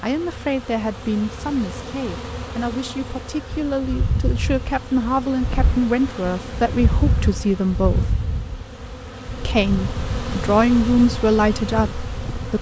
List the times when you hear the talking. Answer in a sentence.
The talking can be heard from 0.0 to 8.1 s and from 9.4 to 12.5 s.